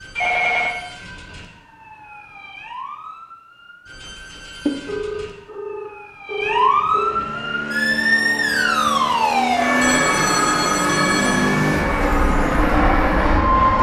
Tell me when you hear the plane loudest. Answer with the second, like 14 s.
13 s.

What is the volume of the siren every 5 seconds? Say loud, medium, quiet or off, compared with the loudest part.
quiet, loud, loud.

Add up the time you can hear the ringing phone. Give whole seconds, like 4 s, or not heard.
5 s.